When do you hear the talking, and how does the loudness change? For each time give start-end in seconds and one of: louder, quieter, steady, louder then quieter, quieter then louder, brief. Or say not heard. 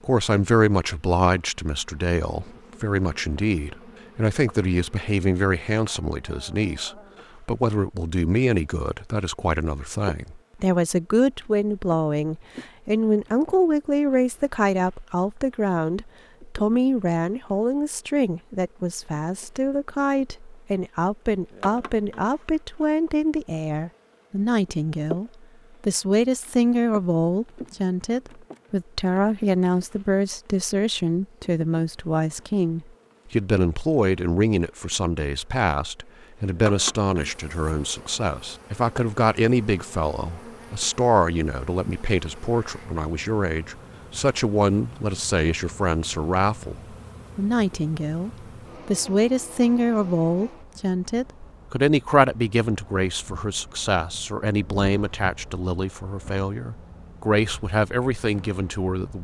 0.1-59.1 steady.